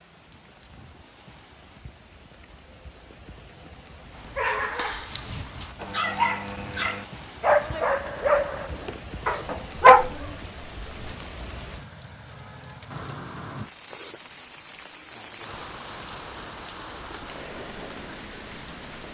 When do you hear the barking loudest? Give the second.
10 s.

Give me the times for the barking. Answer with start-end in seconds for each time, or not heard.
4.2-10.2.